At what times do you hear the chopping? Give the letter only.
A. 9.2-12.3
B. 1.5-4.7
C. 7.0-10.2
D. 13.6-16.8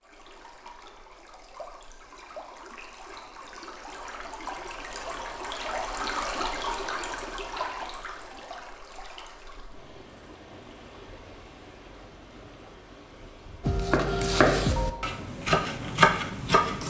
D.